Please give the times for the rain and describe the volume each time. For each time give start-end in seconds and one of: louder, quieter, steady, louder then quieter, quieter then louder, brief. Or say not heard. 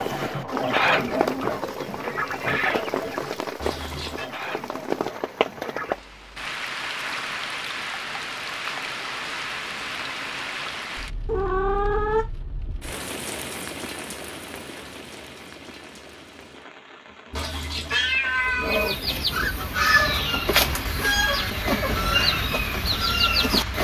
0.0-23.8 quieter then louder.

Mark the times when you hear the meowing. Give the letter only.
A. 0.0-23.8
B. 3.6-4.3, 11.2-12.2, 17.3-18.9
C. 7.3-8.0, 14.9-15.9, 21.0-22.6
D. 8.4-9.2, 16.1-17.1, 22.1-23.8
B.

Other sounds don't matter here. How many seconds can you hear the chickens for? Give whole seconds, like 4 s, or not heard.
11 s.